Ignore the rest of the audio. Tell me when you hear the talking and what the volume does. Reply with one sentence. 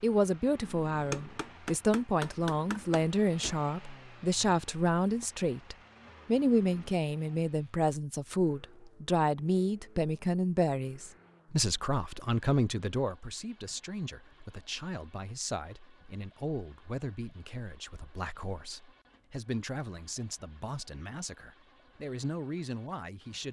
The talking can be heard from 0.0 to 23.4 s, getting quieter.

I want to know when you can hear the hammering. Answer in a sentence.
You can hear the hammering from 1.1 to 3.6 s.